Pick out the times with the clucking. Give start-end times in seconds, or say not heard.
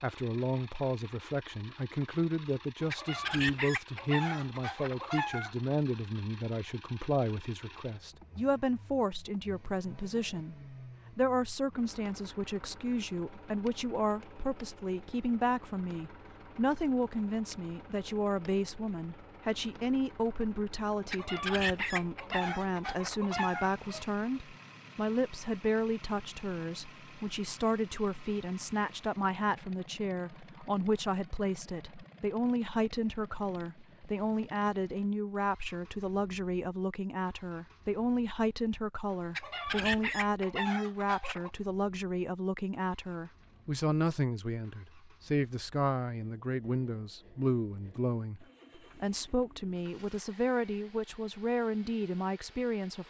2.9-5.5, 21.1-24.1, 39.4-41.5.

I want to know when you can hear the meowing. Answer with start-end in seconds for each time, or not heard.
not heard.